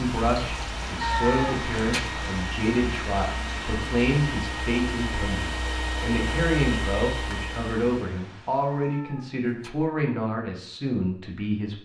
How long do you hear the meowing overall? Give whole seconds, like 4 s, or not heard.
2 s.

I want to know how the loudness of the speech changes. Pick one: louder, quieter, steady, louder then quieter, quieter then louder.
steady.